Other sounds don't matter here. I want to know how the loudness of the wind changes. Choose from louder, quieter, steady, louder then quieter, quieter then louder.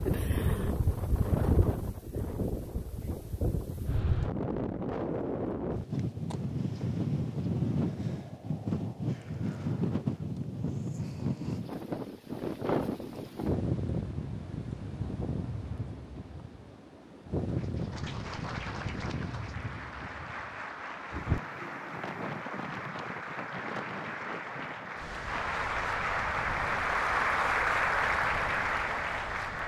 quieter.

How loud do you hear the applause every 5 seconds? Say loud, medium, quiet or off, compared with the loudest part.
off, off, off, quiet, medium, loud.